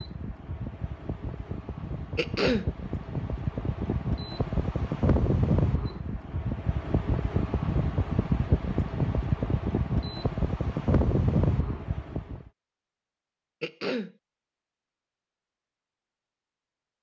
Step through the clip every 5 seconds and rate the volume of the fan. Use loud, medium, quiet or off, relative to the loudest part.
medium, loud, loud, off.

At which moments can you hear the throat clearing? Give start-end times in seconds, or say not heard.
2.1-2.7, 13.6-14.2.